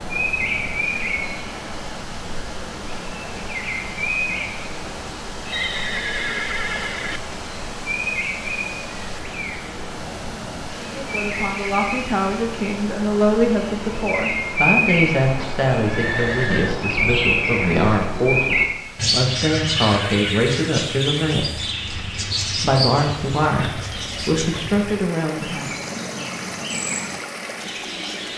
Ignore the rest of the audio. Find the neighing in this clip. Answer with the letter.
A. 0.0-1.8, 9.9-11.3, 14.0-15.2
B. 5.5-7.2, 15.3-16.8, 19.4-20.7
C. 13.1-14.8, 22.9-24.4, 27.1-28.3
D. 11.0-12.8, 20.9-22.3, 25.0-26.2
B.